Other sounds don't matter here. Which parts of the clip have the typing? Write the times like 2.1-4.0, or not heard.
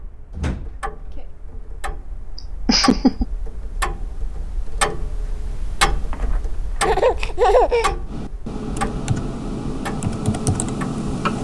8.1-11.3.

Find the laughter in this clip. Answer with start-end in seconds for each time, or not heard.
2.4-3.2, 6.8-8.0.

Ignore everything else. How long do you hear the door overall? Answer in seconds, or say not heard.
2 s.